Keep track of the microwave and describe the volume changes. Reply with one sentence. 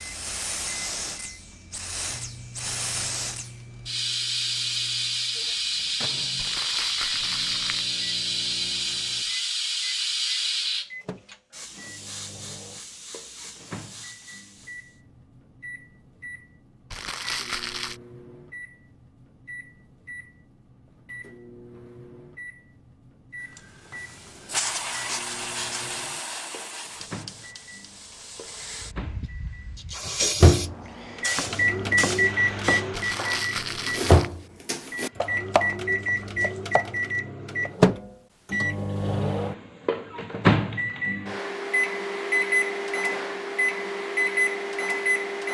The volume of the microwave goes up.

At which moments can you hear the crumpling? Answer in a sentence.
The crumpling can be heard from 6.3 to 7.9 s, from 16.9 to 18.0 s and from 32.9 to 34.3 s.